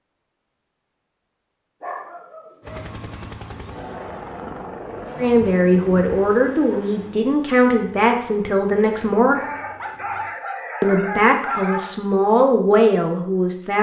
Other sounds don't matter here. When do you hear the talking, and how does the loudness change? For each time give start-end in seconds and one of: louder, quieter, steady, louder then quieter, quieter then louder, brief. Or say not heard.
5.2-9.4 steady
10.8-13.7 brief.